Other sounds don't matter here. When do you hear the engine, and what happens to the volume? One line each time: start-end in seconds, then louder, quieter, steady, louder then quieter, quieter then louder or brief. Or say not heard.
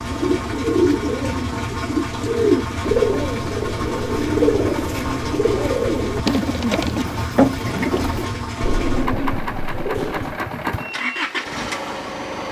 0.0-12.4 steady.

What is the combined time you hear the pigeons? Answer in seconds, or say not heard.
10 s.